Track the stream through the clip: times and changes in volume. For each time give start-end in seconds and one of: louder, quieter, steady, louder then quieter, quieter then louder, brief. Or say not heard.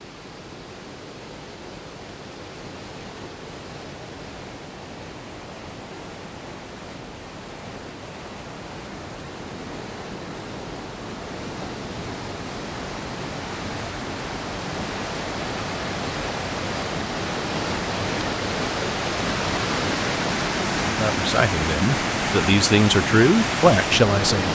0.0-24.5 louder.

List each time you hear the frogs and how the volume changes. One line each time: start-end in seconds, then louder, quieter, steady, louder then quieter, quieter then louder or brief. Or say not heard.
not heard.